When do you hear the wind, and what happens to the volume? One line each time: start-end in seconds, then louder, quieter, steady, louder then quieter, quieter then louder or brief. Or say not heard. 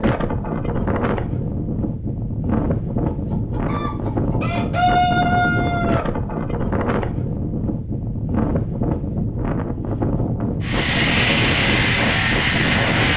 0.0-13.1 steady.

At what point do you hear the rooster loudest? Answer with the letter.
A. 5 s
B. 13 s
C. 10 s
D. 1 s
A.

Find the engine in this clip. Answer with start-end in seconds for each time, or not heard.
10.6-13.1.